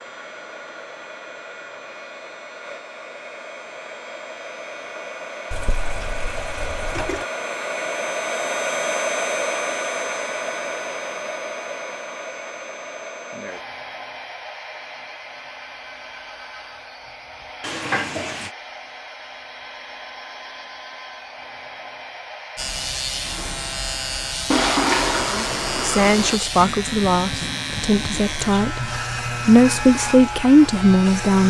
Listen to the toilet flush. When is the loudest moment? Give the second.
25 s.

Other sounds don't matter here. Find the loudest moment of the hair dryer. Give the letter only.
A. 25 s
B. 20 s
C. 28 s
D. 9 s
D.